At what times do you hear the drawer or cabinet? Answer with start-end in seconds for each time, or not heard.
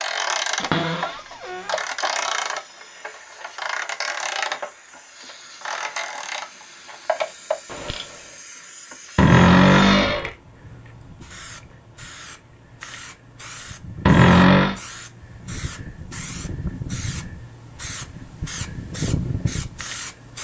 0.6-1.8, 9.2-10.3, 14.1-14.8.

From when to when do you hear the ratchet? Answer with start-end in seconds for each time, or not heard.
0.0-8.3.